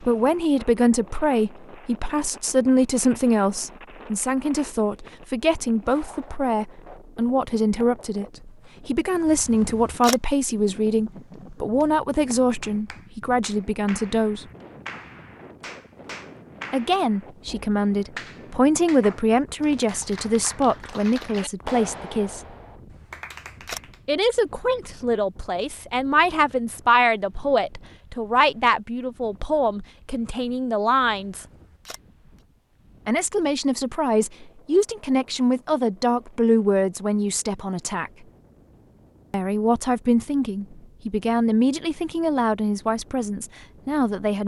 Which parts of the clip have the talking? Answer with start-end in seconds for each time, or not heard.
0.0-14.4, 16.7-22.4, 24.1-31.4, 33.0-38.1, 39.3-44.4.